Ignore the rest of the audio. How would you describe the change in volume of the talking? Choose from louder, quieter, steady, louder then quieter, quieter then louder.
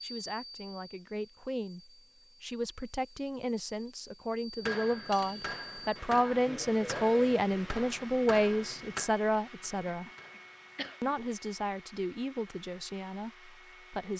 louder then quieter.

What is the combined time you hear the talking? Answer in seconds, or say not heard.
13 s.